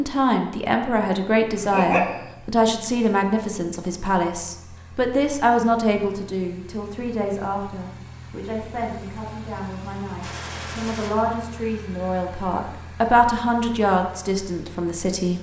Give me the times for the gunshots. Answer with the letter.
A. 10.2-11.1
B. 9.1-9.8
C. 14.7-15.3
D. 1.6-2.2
A.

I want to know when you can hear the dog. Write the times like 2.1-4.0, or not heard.
1.6-2.2.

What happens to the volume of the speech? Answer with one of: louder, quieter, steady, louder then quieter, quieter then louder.
quieter then louder.